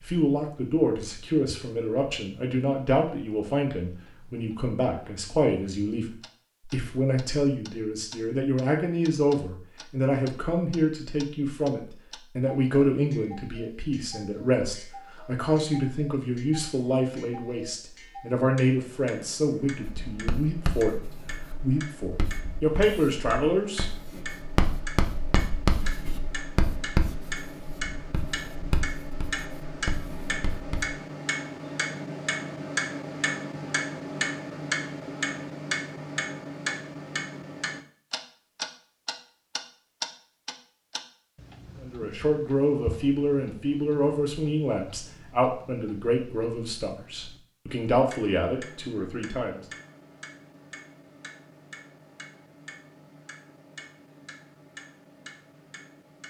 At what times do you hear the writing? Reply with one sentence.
The writing can be heard from 19.8 to 30.9 s.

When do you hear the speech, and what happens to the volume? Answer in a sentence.
The speech can be heard from 0.0 to 23.9 s, at a steady volume; and from 41.8 to 49.6 s, getting quieter then louder.